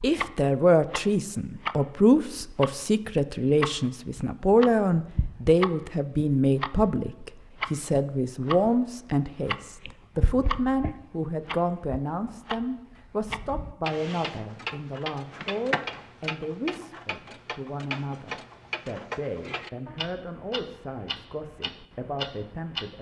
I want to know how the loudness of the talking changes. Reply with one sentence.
The loudness of the talking goes down.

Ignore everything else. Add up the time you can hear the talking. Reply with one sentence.
The talking can be heard for 23 seconds in total.